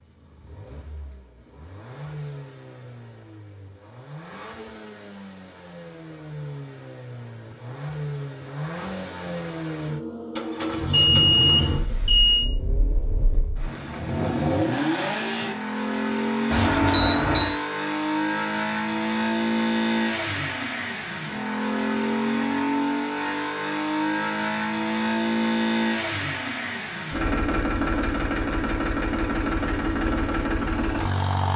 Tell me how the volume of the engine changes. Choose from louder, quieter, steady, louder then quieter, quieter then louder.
louder.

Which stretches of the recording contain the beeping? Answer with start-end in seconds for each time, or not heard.
10.9-12.5, 16.5-17.6.